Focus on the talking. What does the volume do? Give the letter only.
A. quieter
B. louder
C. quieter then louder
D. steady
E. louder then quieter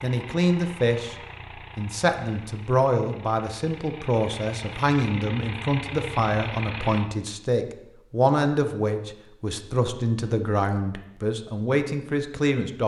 D.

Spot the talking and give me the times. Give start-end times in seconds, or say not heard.
0.0-12.8.